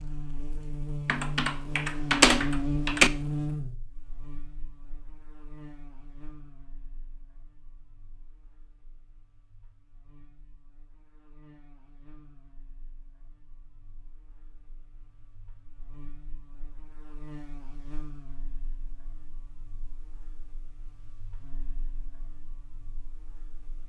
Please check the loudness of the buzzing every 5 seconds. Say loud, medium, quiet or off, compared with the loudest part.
loud, quiet, quiet, quiet, quiet.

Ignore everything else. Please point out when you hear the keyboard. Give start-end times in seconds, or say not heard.
1.1-3.1.